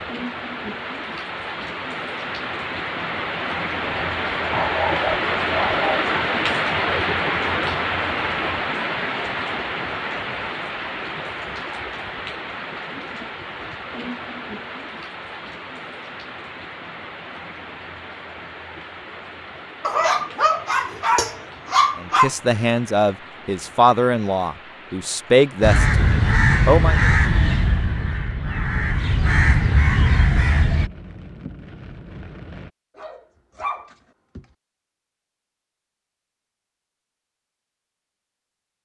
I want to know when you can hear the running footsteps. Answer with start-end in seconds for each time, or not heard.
not heard.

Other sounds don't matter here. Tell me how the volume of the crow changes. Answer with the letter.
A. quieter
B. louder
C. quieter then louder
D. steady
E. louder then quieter
C.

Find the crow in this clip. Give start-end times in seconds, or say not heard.
25.6-30.9.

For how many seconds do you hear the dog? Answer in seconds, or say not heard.
6 s.